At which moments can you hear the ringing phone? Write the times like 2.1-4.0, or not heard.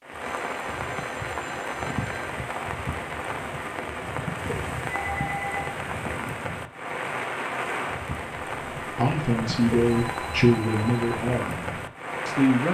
0.5-2.3, 4.8-5.8, 9.9-11.2.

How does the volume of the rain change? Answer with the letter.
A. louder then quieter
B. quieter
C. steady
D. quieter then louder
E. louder
C.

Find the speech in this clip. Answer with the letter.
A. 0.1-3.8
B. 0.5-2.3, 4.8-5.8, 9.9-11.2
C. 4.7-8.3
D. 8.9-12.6
D.